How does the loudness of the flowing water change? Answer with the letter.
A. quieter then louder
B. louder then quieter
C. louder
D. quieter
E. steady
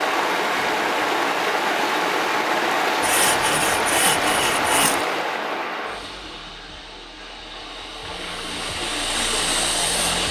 A.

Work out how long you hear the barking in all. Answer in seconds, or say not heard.
not heard.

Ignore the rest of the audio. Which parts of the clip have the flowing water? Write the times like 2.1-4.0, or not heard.
0.0-10.2.